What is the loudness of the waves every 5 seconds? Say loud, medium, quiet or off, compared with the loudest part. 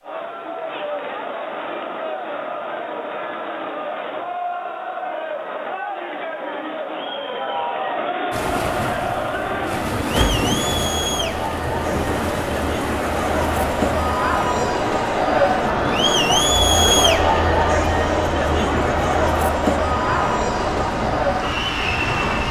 off, loud, loud, loud, loud.